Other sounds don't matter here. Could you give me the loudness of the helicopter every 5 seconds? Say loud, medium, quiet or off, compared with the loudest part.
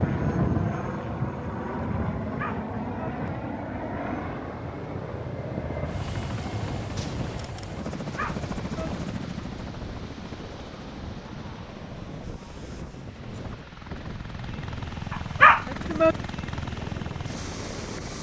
loud, loud, medium, loud.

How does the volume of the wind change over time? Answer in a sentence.
The volume of the wind goes down.